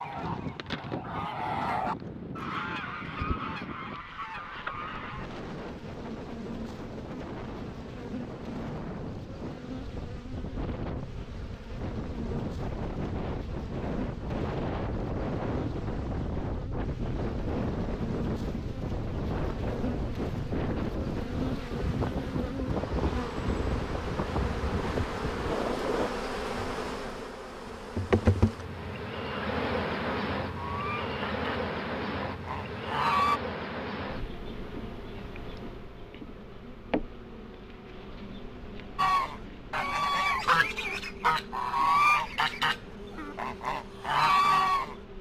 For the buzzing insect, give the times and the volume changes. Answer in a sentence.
You can hear the buzzing insect from 0.0 to 45.1 s, getting louder then quieter.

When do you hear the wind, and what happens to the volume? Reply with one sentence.
You can hear the wind from 0.0 to 26.1 s, getting louder.